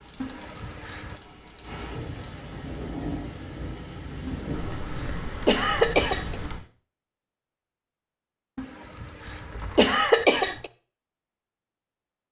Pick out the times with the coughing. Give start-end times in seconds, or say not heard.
0.2-1.2, 4.2-6.3, 8.6-10.7.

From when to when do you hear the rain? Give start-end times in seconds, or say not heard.
0.0-6.7.